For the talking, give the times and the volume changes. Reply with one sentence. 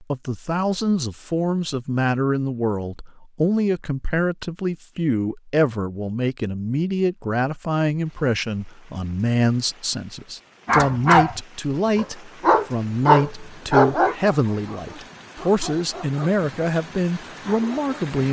The talking can be heard from 0.0 to 18.2 s, at a steady volume.